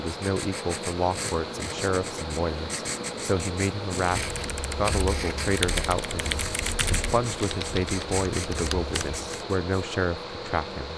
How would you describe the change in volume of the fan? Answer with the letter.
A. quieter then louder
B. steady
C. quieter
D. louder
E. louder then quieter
B.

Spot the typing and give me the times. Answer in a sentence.
You can hear the typing from 4.1 to 9.2 s.